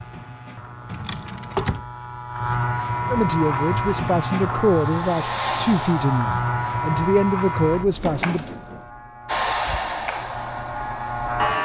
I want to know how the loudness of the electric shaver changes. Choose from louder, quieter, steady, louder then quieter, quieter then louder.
louder then quieter.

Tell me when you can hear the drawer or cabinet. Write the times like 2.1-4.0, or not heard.
0.8-1.9, 7.8-8.9.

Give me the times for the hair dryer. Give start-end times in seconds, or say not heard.
3.5-7.2, 9.2-11.5.